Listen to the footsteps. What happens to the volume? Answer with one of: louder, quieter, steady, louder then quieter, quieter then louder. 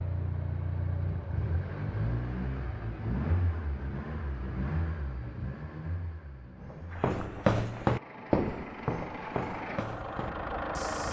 quieter.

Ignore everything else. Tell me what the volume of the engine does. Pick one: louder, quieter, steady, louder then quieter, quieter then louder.
quieter then louder.